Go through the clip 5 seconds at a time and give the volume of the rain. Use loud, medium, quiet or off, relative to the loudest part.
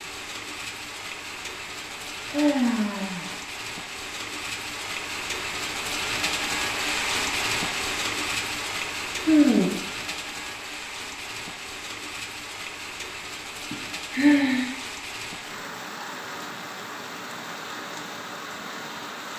medium, loud, medium, medium.